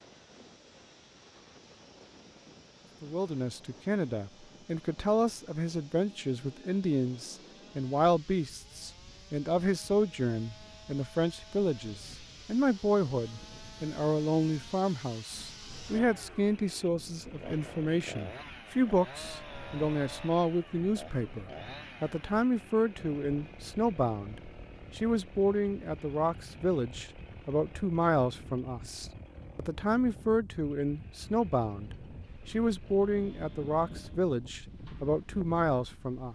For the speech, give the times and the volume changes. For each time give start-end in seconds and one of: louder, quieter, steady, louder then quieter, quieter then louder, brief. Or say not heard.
3.0-36.3 steady.